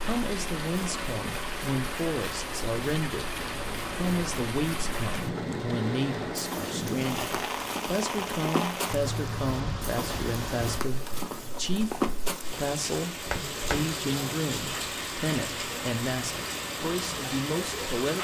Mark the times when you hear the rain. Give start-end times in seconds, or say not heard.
0.0-18.1.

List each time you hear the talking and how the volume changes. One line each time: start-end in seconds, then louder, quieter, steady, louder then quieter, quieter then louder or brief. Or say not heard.
0.0-18.1 steady.